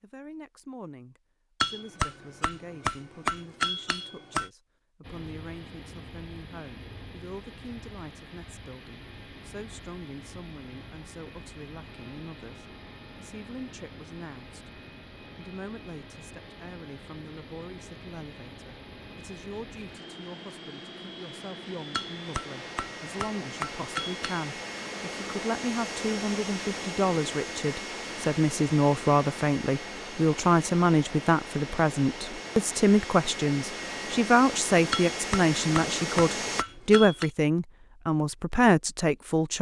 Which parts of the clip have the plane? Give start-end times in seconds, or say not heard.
5.0-36.6.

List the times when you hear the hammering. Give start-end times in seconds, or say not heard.
1.6-4.5, 21.9-24.5, 34.9-37.3.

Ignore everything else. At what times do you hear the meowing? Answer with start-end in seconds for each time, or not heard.
not heard.